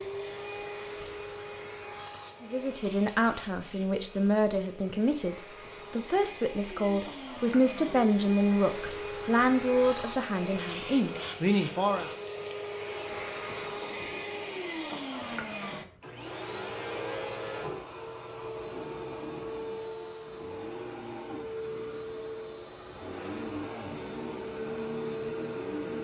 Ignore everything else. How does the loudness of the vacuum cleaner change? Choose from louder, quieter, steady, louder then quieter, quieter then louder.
louder.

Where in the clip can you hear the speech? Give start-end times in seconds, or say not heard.
2.4-12.1.